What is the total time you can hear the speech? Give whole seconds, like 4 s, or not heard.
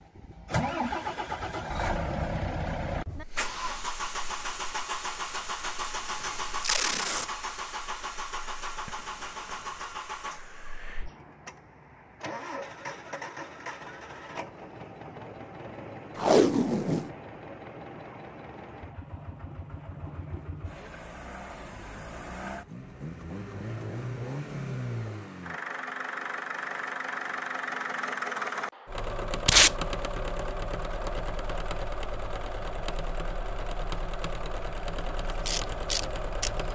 not heard.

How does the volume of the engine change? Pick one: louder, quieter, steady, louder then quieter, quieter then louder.
quieter then louder.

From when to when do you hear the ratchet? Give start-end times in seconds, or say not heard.
35.1-36.7.